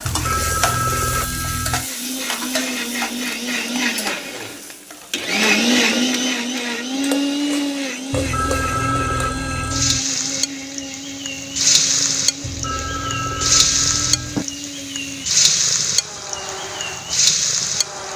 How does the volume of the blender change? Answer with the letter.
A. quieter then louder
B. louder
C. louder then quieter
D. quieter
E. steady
C.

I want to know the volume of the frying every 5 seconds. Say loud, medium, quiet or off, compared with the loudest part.
medium, medium, loud, loud.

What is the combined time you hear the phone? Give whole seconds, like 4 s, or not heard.
6 s.